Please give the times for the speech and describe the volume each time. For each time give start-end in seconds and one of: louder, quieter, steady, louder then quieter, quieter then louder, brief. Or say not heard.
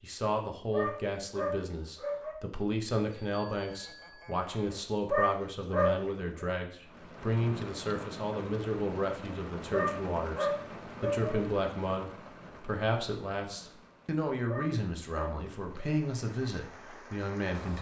0.0-17.7 steady.